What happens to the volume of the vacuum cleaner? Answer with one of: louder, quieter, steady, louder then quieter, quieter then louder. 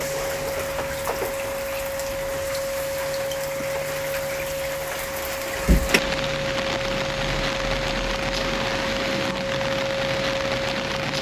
steady.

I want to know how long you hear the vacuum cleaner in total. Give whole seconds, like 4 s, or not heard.
11 s.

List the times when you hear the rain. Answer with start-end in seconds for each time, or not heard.
0.0-11.1.